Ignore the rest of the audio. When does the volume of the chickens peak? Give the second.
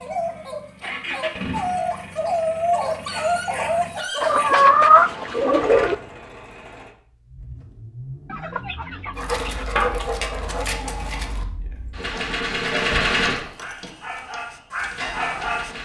5 s.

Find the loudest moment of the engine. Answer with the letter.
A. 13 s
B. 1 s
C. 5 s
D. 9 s
A.